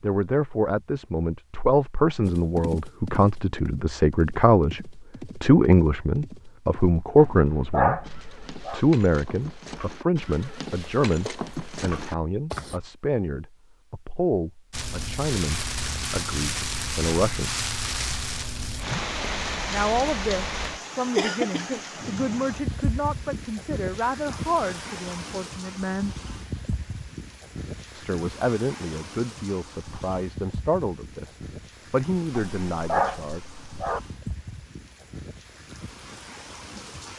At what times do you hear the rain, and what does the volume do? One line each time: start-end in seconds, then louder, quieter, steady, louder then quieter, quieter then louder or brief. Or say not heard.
14.7-37.1 quieter.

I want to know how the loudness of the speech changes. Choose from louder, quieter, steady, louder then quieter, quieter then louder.
quieter.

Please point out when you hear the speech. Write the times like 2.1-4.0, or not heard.
0.0-17.5, 19.7-26.1, 27.9-33.4.